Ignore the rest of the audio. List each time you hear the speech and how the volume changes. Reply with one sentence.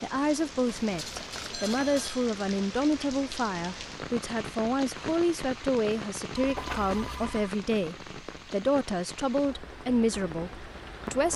The speech can be heard from 0.0 to 11.3 s, at a steady volume.